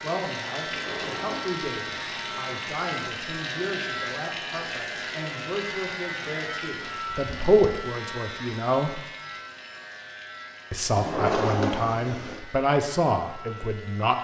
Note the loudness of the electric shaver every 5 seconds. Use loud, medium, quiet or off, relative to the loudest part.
loud, loud, medium.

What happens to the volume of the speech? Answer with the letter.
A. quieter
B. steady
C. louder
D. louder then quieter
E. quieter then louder
C.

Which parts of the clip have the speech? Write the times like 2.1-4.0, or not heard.
0.0-9.0, 10.7-14.1.